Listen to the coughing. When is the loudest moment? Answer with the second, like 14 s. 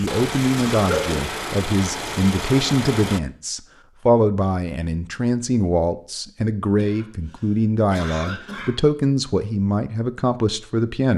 1 s.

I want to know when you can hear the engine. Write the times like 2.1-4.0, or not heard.
0.0-3.2.